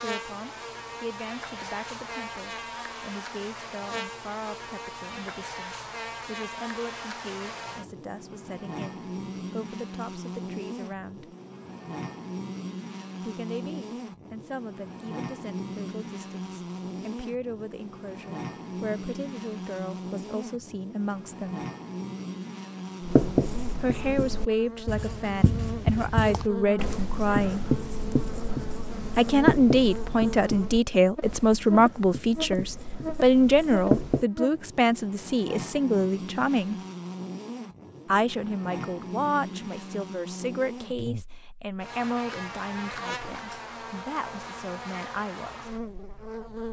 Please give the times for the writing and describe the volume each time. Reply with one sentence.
The writing can be heard from 23.0 to 34.2 s, getting louder then quieter.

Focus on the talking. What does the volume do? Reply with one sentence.
The loudness of the talking goes up, then down.